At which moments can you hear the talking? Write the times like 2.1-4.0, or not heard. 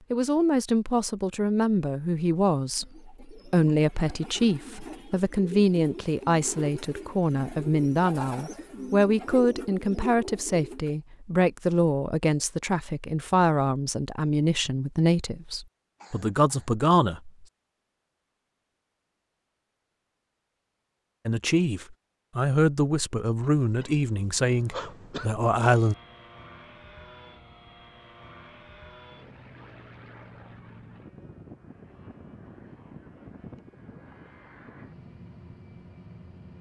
0.1-17.3, 21.2-25.9.